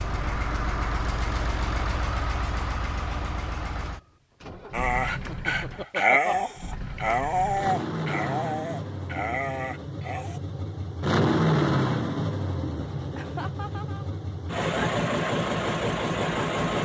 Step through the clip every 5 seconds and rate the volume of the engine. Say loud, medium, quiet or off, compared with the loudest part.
medium, medium, loud, loud.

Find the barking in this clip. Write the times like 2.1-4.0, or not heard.
4.7-10.4.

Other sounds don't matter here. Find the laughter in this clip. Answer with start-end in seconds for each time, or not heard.
5.1-6.3, 13.2-14.2.